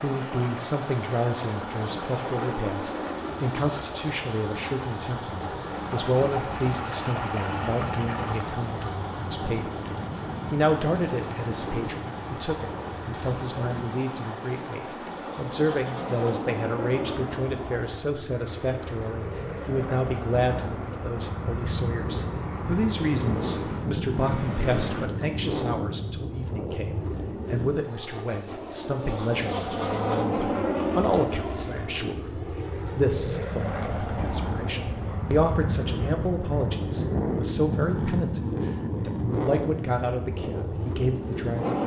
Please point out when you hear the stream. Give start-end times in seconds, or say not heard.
0.0-25.1.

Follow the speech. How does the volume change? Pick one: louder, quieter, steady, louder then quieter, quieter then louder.
steady.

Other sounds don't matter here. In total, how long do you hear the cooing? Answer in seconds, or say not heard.
not heard.